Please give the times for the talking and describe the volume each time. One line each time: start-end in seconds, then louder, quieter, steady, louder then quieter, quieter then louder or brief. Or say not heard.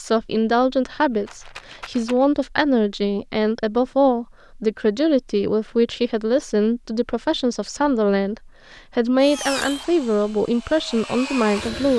0.0-11.9 steady.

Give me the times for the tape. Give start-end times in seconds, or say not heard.
not heard.